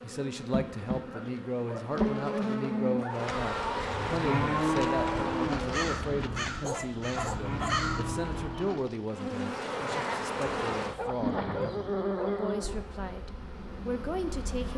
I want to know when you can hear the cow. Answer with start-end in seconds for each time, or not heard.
2.7-9.2.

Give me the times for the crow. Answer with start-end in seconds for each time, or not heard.
5.5-8.7.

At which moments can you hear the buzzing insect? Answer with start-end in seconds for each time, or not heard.
0.0-5.8, 9.1-14.7.